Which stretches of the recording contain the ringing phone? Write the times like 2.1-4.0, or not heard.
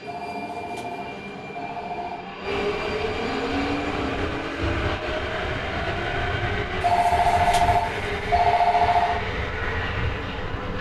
0.1-2.2, 6.8-9.2.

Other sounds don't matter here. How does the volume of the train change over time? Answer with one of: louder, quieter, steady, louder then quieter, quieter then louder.
louder.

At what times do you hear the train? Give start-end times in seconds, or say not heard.
0.0-10.7.